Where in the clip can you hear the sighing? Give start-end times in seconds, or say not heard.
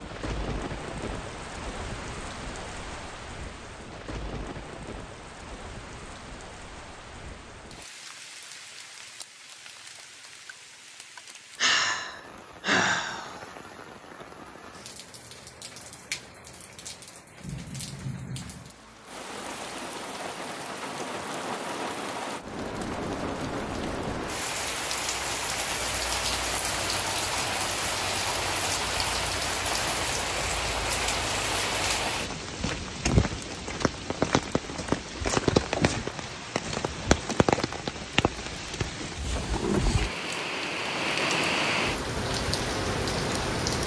11.6-13.4, 35.7-37.2.